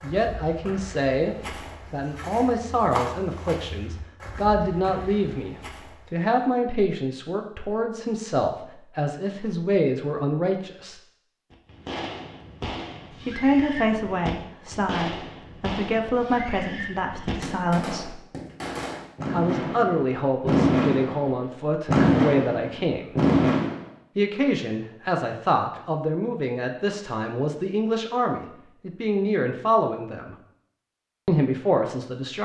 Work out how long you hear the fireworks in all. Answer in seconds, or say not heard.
12 s.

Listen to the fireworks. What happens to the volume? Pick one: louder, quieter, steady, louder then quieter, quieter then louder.
louder.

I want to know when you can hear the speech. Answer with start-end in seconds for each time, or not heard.
0.0-11.0, 13.2-18.2, 19.3-23.1, 24.1-30.4, 31.2-32.4.